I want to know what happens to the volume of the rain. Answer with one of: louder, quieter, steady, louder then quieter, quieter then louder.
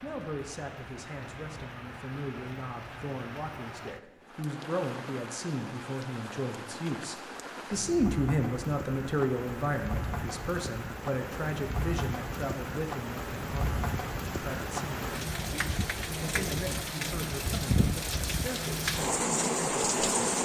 louder.